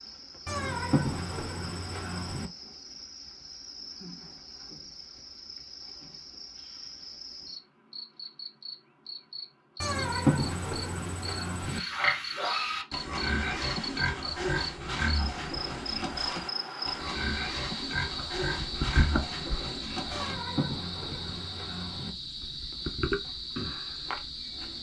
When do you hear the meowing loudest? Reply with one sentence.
The loudest moment of the meowing is at 10 seconds.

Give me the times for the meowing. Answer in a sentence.
You can hear the meowing from 0.5 to 2.5 s, from 9.8 to 11.8 s and from 20.1 to 22.1 s.